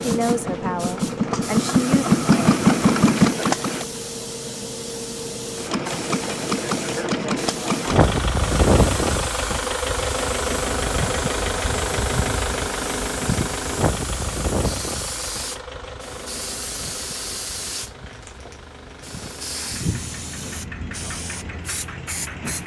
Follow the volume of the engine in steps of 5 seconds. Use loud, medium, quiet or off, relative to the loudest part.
loud, loud, medium, quiet, quiet.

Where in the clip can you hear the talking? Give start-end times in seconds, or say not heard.
0.0-2.0.